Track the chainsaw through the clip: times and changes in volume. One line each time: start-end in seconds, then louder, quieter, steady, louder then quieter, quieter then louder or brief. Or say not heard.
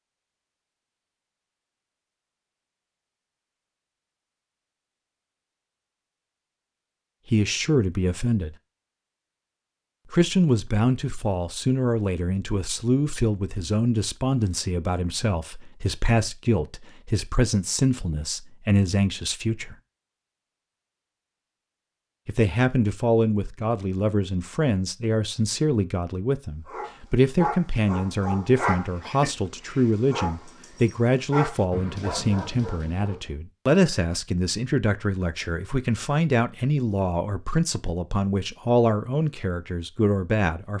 not heard.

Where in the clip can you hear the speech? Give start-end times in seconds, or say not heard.
7.2-8.6, 10.1-19.8, 22.2-40.7.